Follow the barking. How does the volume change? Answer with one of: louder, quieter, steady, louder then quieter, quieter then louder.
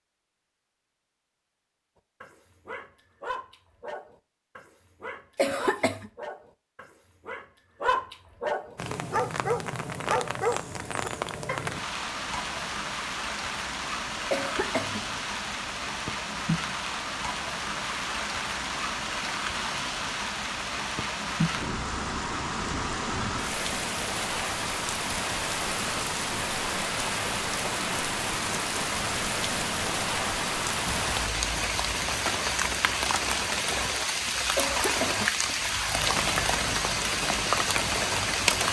louder.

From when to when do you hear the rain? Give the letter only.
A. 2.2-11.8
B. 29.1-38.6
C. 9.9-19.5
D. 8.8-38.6
D.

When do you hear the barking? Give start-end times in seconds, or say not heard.
2.2-11.8.